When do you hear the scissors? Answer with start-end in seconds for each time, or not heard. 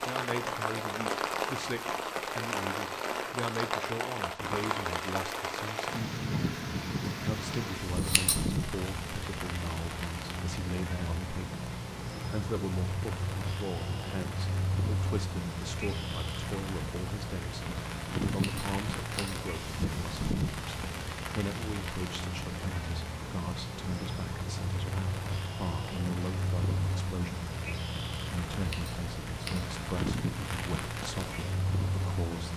8.0-8.6, 18.2-19.4, 28.6-29.6.